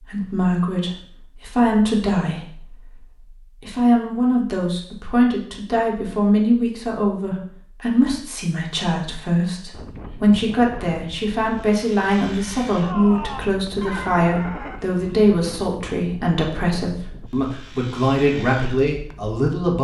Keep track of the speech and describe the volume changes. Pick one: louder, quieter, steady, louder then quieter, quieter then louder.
steady.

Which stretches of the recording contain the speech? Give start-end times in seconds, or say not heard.
0.0-19.7.